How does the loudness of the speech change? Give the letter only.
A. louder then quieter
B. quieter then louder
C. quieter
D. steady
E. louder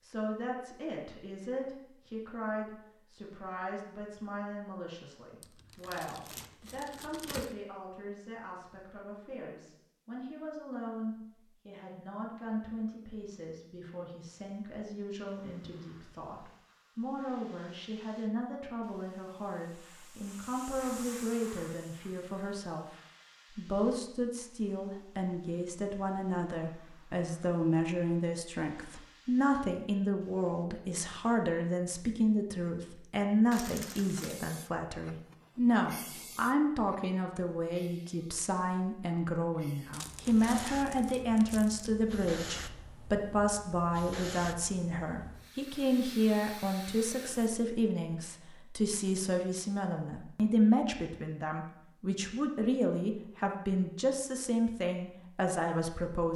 E.